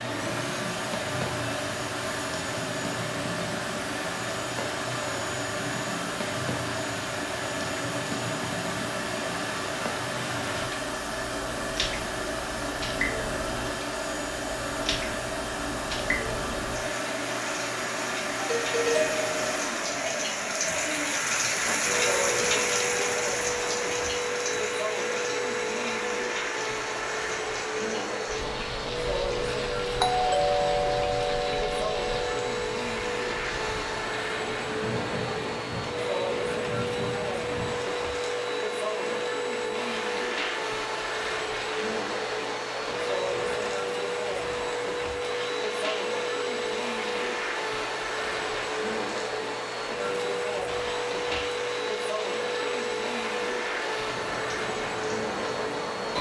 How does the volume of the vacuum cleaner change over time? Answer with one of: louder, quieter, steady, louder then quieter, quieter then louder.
steady.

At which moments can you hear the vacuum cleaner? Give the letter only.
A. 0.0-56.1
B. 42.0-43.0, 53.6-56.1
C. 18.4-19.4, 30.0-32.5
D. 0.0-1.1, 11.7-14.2
A.